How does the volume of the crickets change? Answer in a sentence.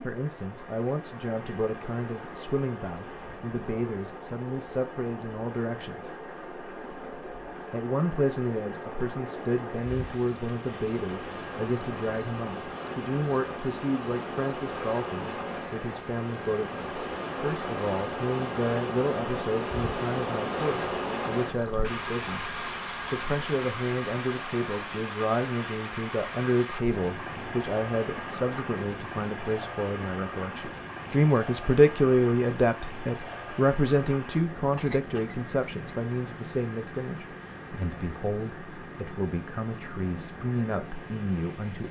The loudness of the crickets goes up.